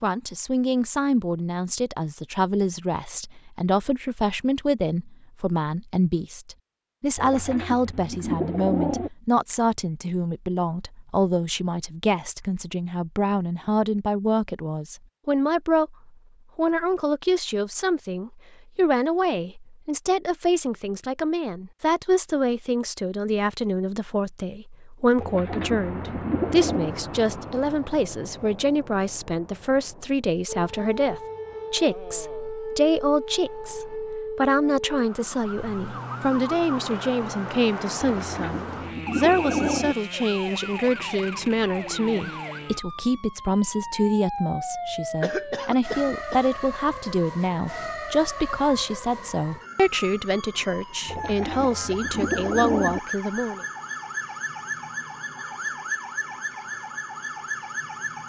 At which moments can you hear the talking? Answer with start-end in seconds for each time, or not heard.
0.0-53.6.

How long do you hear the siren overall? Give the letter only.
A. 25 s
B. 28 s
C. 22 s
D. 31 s
B.